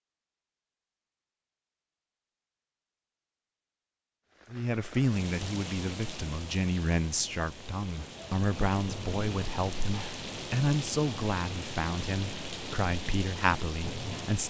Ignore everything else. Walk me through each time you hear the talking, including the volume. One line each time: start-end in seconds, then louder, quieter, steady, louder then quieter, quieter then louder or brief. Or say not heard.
4.5-14.4 steady.